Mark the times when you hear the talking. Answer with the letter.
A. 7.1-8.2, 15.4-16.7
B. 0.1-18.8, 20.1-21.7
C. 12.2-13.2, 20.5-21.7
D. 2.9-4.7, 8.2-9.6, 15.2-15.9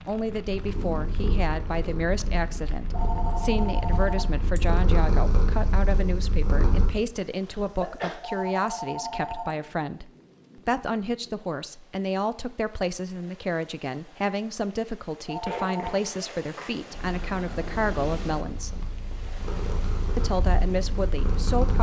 B.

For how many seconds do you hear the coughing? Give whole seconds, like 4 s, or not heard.
2 s.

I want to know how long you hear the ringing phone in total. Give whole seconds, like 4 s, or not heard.
4 s.